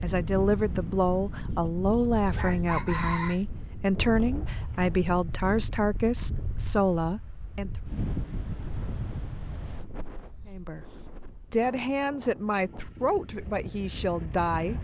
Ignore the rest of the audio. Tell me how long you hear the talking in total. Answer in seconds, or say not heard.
12 s.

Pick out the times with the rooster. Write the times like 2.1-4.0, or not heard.
2.4-3.4.